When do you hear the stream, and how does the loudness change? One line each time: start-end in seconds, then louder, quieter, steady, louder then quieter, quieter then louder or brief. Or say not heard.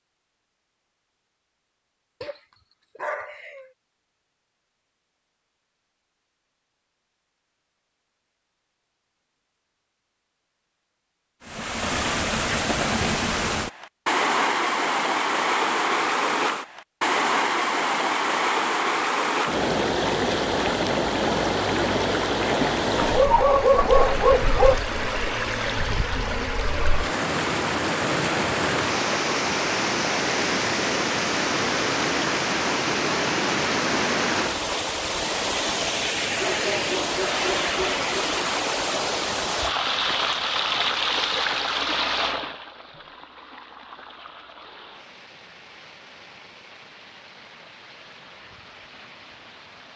11.4-49.9 quieter.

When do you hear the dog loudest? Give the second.
24 s.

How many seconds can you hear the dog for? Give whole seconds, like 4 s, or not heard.
5 s.